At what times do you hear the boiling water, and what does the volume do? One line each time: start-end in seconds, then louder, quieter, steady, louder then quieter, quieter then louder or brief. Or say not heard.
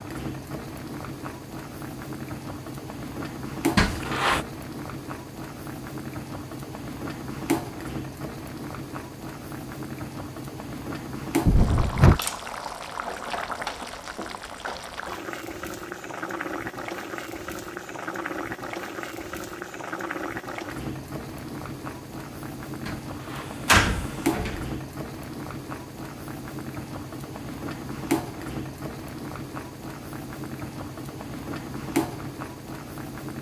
0.0-33.3 steady.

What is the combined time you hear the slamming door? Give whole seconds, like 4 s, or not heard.
3 s.